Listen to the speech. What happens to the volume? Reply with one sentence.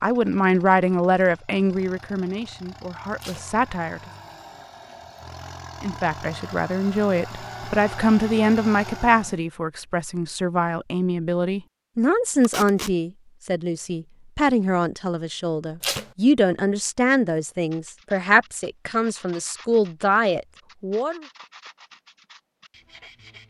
The volume of the speech stays about the same.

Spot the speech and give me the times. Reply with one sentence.
You can hear the speech from 0.0 to 4.0 s and from 5.8 to 21.2 s.